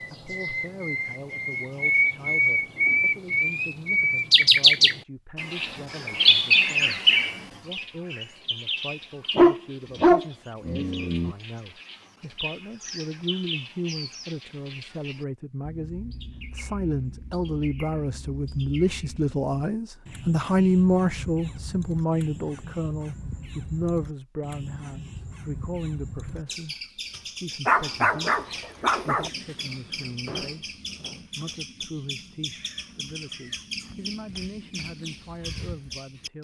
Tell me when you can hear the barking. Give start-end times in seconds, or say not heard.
9.3-11.3, 27.6-29.3.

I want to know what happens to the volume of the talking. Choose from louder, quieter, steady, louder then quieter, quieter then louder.
louder then quieter.